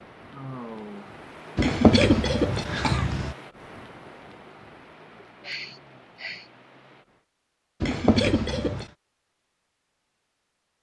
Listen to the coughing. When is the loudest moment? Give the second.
2 s.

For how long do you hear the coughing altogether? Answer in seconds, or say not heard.
3 s.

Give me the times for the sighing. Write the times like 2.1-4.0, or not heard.
0.3-1.1, 5.4-6.5.